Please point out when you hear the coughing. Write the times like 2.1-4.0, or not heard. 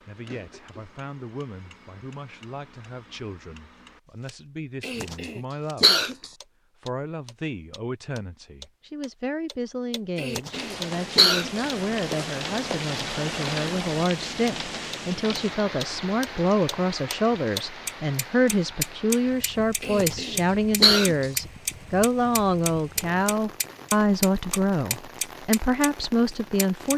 4.8-6.2, 10.2-11.6, 19.8-21.2.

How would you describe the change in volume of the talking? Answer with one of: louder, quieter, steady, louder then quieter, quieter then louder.
louder.